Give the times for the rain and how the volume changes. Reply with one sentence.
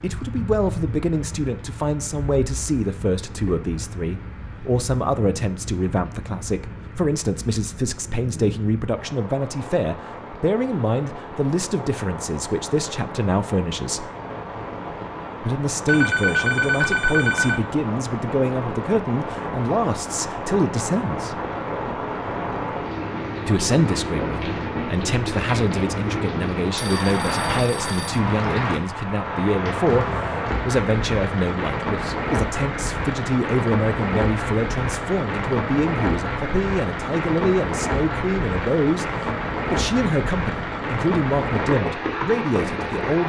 You can hear the rain from 0.0 to 43.2 s, getting louder.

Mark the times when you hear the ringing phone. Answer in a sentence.
You can hear the ringing phone from 15.8 to 17.6 s and from 26.8 to 28.2 s.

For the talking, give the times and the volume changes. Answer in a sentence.
The talking can be heard from 0.0 to 14.1 s, at a steady volume; from 15.4 to 21.4 s, at a steady volume; and from 23.4 to 43.2 s, at a steady volume.